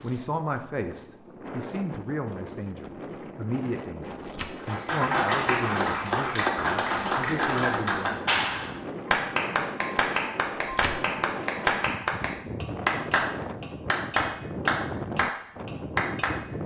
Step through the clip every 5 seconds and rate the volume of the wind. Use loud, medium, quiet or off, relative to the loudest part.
medium, loud, loud, loud.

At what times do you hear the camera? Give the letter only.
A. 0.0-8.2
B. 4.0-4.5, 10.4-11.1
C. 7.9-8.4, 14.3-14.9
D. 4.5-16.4
B.